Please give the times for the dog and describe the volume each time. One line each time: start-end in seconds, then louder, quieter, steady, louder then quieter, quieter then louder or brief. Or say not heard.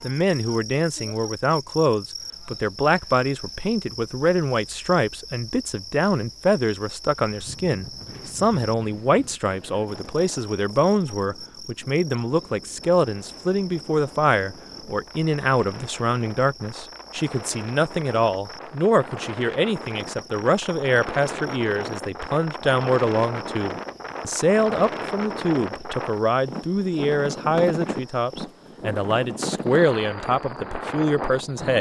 not heard.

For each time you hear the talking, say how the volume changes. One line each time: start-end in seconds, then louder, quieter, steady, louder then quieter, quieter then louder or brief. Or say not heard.
0.0-31.7 steady.